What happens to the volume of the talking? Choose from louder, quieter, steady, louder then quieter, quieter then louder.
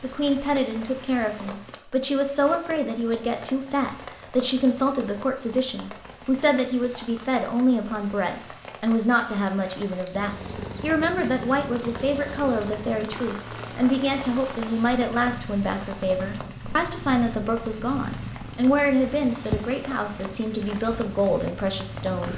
steady.